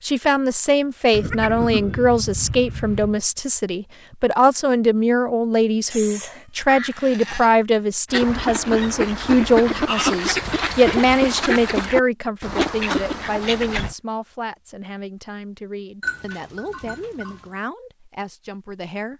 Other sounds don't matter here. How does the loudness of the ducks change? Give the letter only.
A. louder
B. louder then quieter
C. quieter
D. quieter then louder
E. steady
E.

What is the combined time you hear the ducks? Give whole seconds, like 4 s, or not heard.
6 s.